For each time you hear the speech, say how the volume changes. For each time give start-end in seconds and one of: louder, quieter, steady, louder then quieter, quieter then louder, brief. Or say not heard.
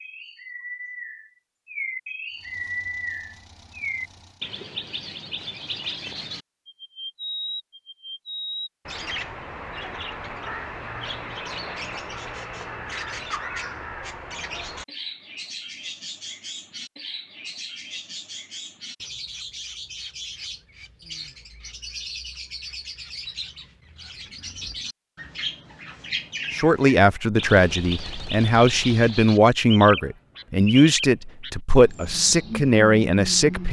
26.6-33.6 steady.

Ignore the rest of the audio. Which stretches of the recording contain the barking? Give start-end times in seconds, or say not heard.
not heard.